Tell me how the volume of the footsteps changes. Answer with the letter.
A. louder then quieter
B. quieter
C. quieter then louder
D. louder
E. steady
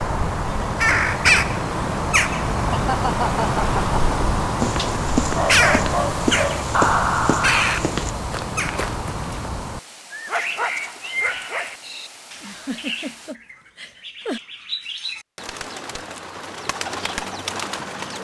B.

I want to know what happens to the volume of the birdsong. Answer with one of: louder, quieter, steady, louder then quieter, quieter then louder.
quieter.